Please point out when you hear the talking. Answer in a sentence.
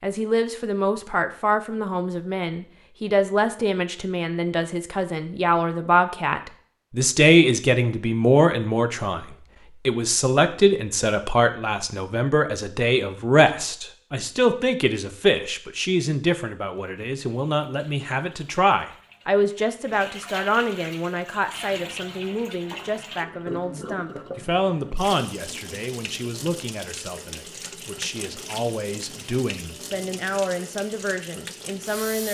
You can hear the talking from 0.0 to 32.2 s.